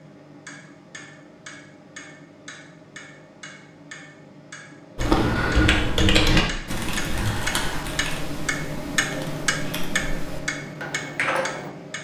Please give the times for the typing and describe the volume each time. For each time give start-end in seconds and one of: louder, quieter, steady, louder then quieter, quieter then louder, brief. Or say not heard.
5.0-11.7 quieter then louder.